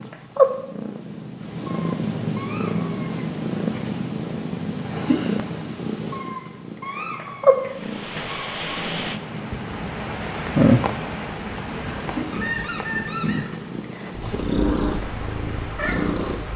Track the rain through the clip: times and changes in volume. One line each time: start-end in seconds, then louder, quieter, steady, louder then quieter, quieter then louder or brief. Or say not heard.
7.5-16.5 louder then quieter.